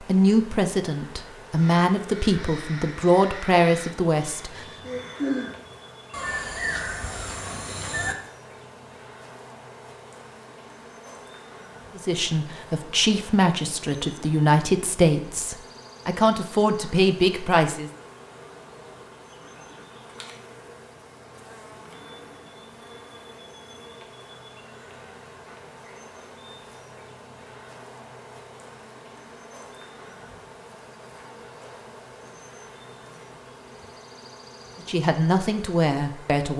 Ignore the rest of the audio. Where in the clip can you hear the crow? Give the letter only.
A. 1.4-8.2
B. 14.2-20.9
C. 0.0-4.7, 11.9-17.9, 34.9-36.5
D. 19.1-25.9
A.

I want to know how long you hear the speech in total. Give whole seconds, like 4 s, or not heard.
12 s.